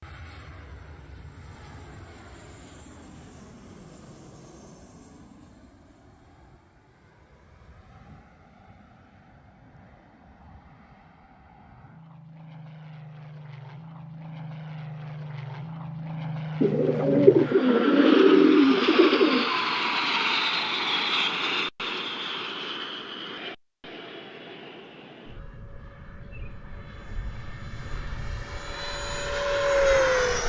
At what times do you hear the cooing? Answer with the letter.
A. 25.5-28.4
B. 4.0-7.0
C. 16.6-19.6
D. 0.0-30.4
C.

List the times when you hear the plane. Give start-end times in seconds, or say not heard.
0.0-30.4.